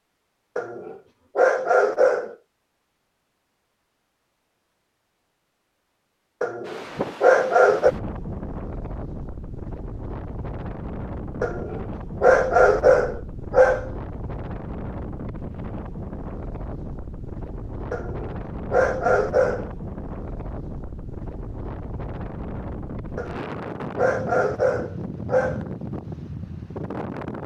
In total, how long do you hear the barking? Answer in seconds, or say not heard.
10 s.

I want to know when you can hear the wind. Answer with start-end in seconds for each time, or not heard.
6.7-27.4.